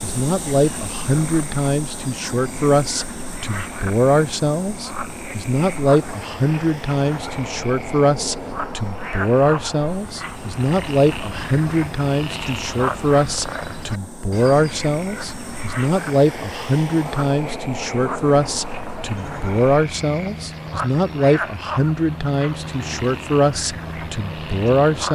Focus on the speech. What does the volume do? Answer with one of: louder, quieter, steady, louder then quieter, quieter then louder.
steady.